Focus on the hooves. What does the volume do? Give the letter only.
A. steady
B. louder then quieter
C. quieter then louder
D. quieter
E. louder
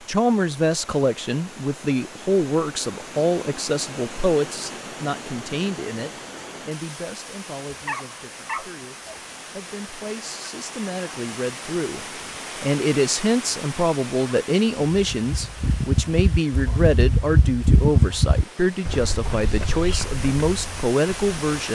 B.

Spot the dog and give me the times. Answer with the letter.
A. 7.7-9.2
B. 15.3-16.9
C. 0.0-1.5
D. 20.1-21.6
A.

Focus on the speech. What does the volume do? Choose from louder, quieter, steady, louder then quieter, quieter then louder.
quieter then louder.